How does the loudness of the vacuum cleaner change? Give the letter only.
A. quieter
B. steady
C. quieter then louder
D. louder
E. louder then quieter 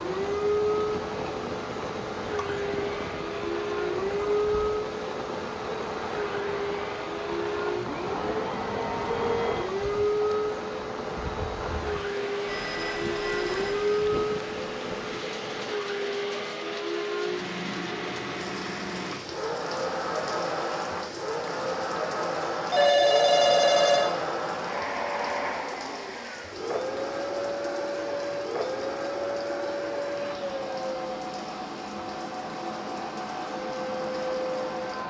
B.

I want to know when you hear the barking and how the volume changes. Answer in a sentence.
You can't hear the barking here.